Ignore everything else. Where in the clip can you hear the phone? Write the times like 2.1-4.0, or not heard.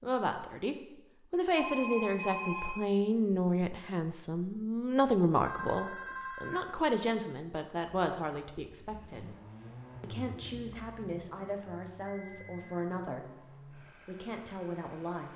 1.5-2.9, 5.4-6.7, 11.6-12.9.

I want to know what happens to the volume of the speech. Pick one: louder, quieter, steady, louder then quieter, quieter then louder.
quieter.